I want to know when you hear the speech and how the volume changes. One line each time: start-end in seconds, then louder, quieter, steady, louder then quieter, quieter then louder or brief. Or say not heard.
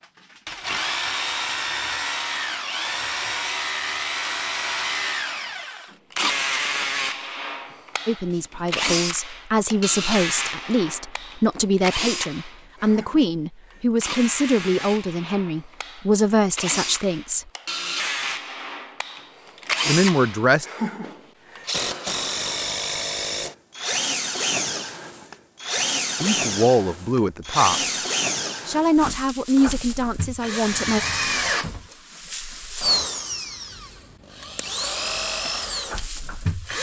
8.1-17.4 steady
19.9-20.6 brief
26.2-27.9 brief
28.6-31.0 brief.